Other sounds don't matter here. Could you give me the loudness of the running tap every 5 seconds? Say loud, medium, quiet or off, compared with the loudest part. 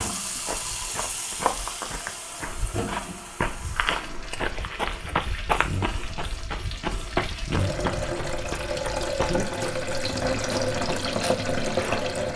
medium, medium, loud.